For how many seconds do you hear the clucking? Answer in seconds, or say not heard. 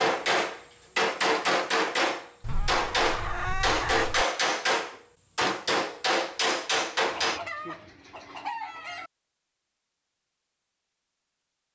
4 s.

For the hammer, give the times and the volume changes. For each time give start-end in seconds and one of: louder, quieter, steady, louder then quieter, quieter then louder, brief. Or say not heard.
0.0-7.4 steady.